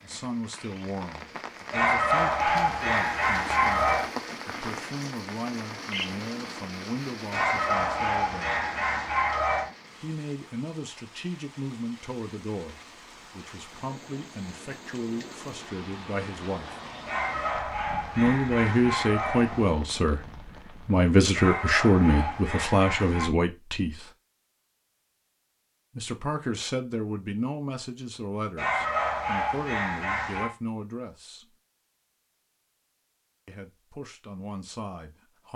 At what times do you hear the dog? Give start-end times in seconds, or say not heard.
1.7-4.1, 7.3-9.7, 17.1-19.8, 21.4-23.3, 28.6-30.5.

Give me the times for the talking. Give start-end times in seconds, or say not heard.
0.0-8.7, 10.0-16.8, 18.1-24.1, 25.9-31.6, 33.5-35.5.